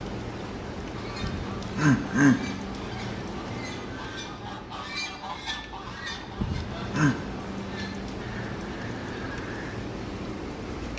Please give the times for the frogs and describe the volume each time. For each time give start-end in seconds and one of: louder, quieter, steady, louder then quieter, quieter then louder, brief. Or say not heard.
not heard.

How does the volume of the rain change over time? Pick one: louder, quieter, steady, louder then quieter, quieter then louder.
quieter then louder.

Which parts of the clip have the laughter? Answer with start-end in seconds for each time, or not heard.
1.2-2.4, 6.3-7.2.